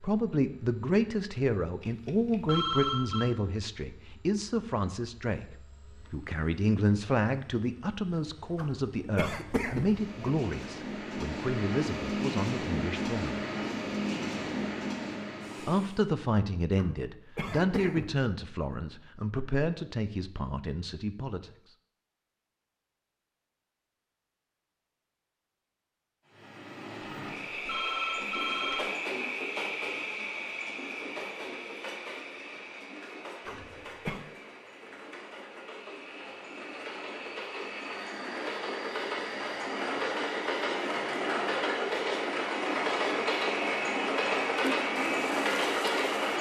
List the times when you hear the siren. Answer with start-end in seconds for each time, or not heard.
not heard.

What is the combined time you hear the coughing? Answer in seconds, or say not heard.
4 s.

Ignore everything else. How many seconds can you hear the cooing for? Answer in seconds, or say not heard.
2 s.